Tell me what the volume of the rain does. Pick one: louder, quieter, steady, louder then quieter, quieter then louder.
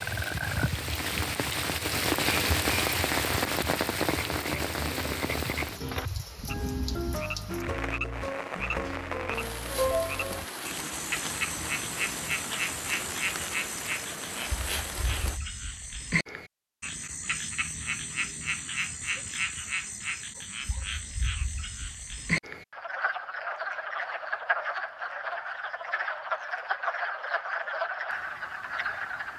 quieter.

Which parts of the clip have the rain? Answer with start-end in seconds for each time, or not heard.
0.0-15.4.